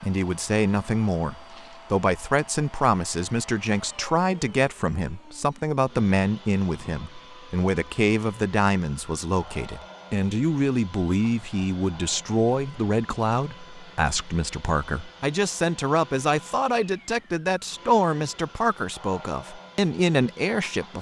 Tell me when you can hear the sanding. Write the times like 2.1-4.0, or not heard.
not heard.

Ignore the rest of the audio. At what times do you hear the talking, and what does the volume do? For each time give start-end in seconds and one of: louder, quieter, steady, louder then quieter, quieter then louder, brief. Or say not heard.
0.0-20.9 steady.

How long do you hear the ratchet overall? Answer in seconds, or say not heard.
not heard.